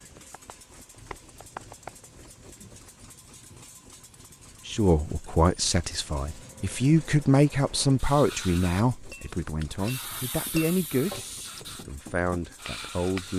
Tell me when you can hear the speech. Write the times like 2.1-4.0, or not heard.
4.7-13.3.